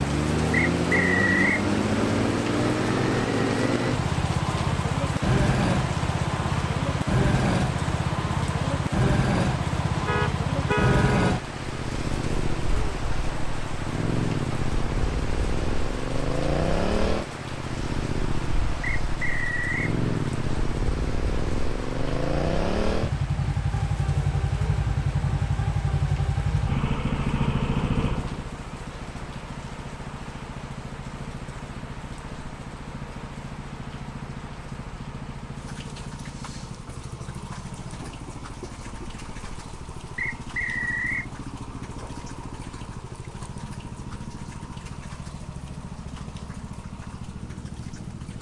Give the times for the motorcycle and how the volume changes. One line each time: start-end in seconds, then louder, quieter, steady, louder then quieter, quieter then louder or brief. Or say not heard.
0.0-48.3 quieter.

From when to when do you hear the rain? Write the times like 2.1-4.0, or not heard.
0.0-48.3.